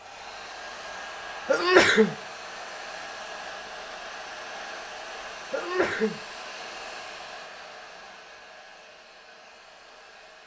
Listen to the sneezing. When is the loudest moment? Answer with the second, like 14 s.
2 s.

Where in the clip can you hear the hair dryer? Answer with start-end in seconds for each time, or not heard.
0.0-10.4.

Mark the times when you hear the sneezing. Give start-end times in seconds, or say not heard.
1.4-2.1, 5.5-6.2.